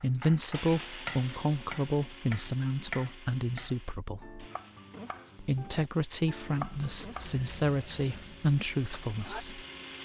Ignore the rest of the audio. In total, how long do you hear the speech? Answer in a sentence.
You can hear the speech for 9 seconds altogether.